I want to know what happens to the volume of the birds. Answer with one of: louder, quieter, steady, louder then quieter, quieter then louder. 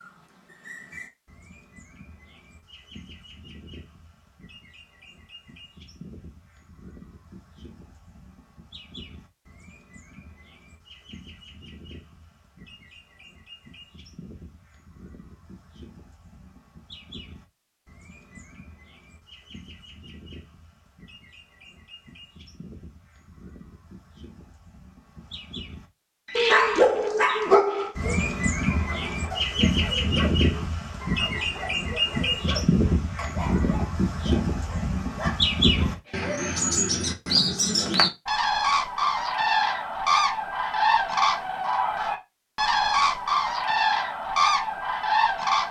louder.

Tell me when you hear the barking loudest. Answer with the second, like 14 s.
27 s.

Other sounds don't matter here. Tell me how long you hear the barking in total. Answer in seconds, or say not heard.
10 s.